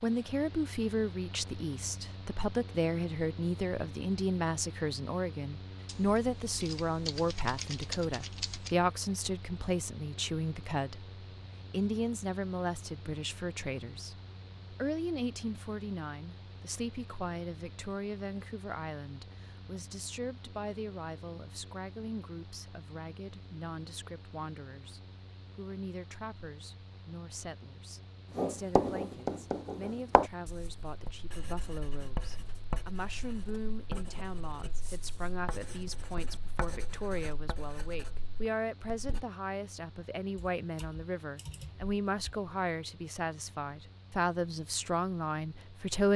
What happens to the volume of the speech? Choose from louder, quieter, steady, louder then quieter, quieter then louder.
quieter then louder.